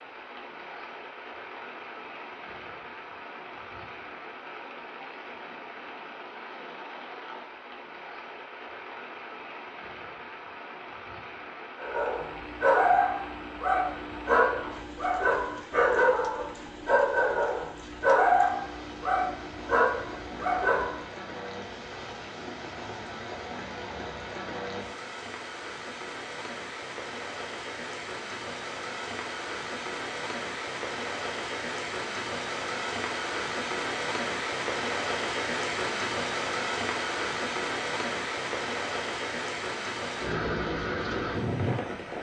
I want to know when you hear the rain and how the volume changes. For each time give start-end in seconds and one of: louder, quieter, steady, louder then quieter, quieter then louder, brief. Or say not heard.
0.0-42.1 louder.